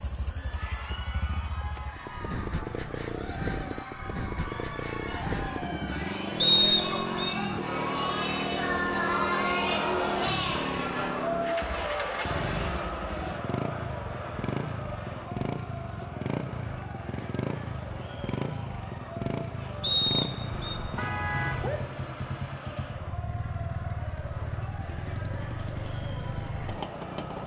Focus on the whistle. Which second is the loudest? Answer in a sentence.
The volume of the whistle peaks at 7 seconds.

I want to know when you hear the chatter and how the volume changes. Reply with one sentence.
You can hear the chatter from 0.2 to 27.4 s, getting louder then quieter.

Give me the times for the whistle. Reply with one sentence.
The whistle can be heard from 6.4 to 7.3 s and from 19.8 to 20.8 s.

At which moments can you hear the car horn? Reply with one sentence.
You can hear the car horn from 20.6 to 21.8 s.